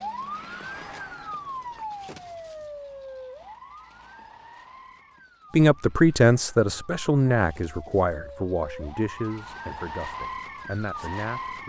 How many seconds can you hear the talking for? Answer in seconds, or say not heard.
6 s.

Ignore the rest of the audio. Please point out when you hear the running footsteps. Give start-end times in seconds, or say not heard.
not heard.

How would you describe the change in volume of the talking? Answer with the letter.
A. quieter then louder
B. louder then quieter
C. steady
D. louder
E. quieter
E.